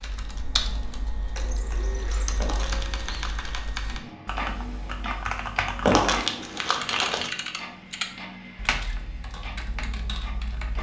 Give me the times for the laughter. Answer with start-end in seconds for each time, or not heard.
not heard.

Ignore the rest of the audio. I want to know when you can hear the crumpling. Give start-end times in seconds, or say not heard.
2.4-3.8, 5.8-7.3.